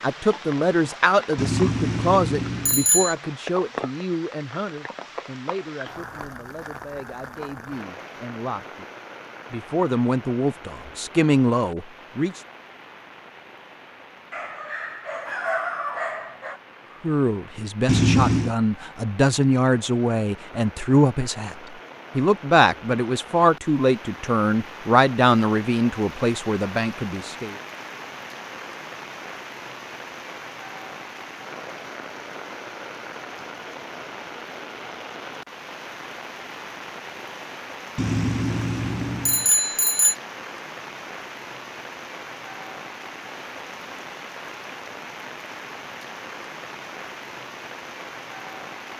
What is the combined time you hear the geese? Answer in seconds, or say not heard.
not heard.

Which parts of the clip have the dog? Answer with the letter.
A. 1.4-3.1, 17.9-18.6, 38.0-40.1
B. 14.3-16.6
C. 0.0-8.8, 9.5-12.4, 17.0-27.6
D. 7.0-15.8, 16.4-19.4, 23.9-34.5
B.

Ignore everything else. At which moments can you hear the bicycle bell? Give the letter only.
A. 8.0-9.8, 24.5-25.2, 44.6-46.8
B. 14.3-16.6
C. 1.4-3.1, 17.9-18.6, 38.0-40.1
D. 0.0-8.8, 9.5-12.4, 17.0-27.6
C.